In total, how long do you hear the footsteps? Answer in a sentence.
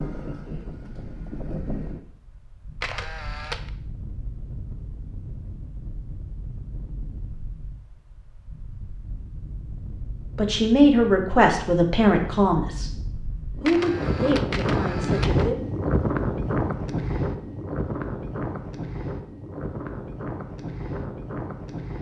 You can't hear the footsteps here.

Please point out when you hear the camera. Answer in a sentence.
The camera can be heard from 2.8 to 3.7 s and from 13.7 to 15.4 s.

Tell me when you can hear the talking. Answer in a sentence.
The talking can be heard from 10.3 to 13.0 s and from 13.6 to 15.6 s.